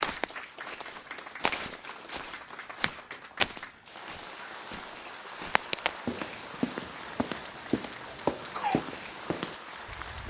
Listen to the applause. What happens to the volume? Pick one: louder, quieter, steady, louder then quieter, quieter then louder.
steady.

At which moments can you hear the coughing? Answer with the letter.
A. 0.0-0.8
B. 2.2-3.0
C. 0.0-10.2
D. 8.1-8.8
D.